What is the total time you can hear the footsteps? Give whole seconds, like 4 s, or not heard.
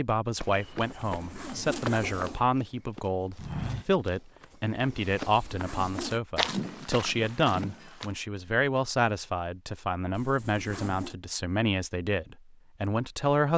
8 s.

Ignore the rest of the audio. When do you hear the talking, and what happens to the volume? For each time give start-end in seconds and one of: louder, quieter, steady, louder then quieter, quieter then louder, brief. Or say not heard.
0.0-13.5 steady.